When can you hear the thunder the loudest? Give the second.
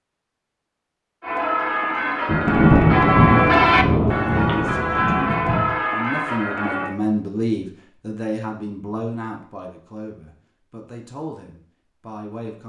3 s.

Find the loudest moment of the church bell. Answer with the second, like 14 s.
4 s.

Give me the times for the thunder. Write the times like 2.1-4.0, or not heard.
2.2-5.7.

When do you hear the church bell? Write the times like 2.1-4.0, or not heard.
1.2-7.0.